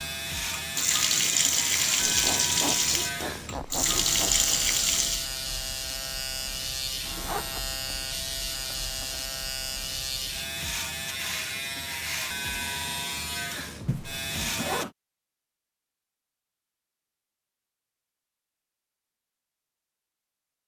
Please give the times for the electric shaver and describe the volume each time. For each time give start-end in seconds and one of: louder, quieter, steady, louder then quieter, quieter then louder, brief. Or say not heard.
0.0-14.8 steady.